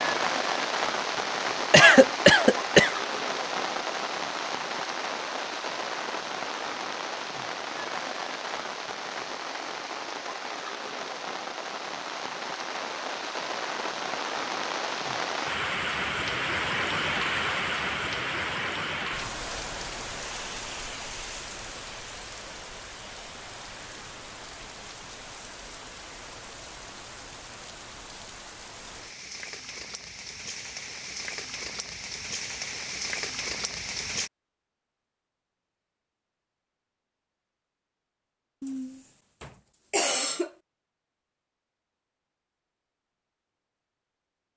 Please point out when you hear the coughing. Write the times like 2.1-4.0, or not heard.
1.7-3.0, 38.6-40.5.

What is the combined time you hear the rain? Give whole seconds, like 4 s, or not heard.
34 s.